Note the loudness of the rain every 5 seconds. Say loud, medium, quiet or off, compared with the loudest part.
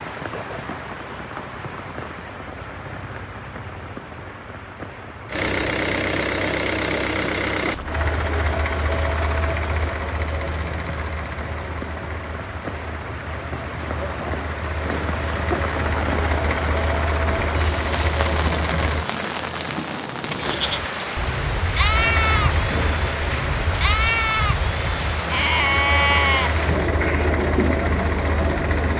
medium, medium, medium, loud, loud, loud.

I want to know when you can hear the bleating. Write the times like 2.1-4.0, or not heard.
20.4-27.4.